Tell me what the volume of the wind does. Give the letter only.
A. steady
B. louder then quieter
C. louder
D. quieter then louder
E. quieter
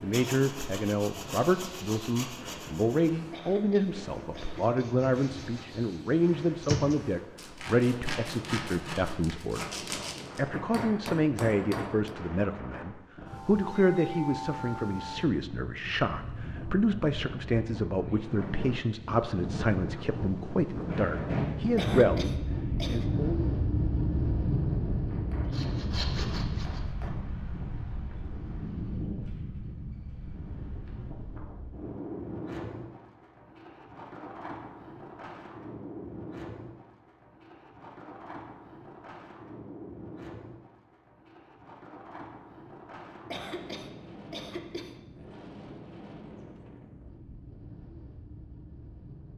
B.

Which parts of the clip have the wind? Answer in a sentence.
The wind can be heard from 0.0 to 49.3 s.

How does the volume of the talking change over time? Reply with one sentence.
The volume of the talking stays about the same.